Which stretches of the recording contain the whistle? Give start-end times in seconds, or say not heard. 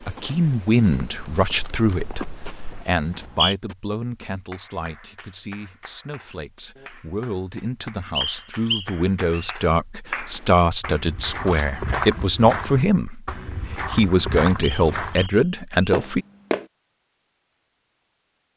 3.0-3.5, 8.2-9.6, 14.6-16.0.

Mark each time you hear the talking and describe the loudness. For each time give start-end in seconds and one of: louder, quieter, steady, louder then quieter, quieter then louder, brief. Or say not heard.
0.0-16.2 quieter then louder.